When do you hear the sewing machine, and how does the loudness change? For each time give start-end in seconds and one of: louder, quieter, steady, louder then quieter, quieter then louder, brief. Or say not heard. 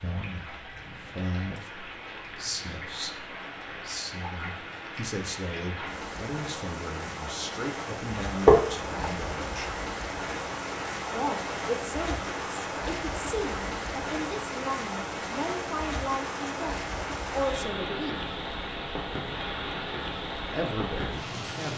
not heard.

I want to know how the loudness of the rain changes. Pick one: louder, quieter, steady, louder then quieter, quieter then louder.
louder.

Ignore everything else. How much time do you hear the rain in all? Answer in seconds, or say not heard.
22 s.